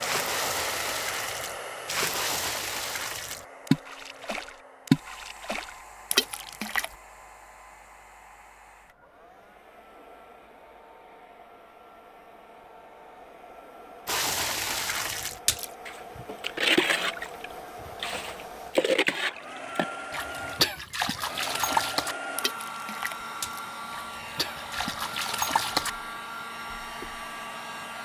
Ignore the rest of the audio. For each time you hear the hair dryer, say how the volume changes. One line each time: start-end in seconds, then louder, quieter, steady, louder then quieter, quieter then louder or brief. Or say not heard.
0.0-27.9 quieter then louder.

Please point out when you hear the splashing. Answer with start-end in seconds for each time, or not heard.
0.0-7.0, 14.1-25.9.